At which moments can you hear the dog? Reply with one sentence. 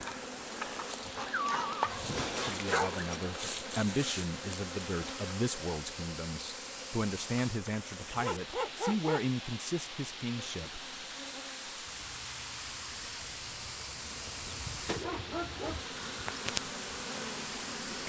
The dog can be heard from 1.1 to 3.2 s, from 7.8 to 9.2 s and from 14.2 to 15.8 s.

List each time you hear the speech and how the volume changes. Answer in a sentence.
The speech can be heard from 2.4 to 11.0 s, at a steady volume.